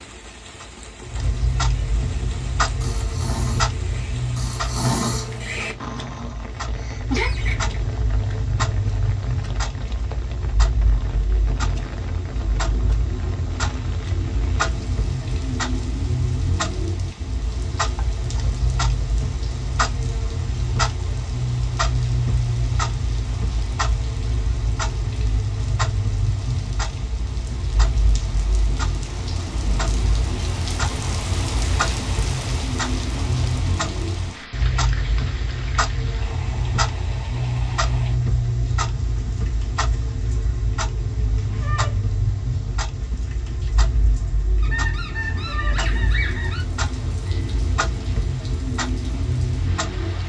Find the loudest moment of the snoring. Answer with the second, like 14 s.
5 s.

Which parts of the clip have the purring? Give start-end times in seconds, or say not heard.
not heard.